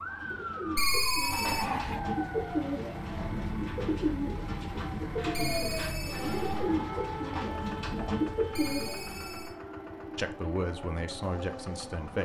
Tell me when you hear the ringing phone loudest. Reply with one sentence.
The volume of the ringing phone peaks at 1 second.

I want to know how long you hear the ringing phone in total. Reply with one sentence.
The ringing phone can be heard for 3 seconds in total.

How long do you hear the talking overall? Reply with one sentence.
The talking can be heard for 2 seconds in total.